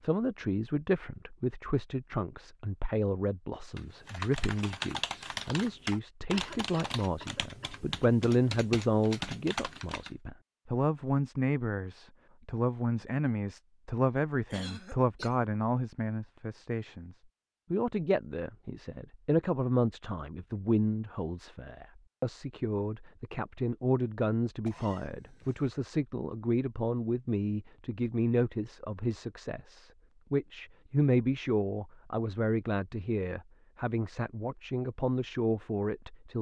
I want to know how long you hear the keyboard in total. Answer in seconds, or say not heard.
6 s.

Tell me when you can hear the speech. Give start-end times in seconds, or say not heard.
0.0-36.3.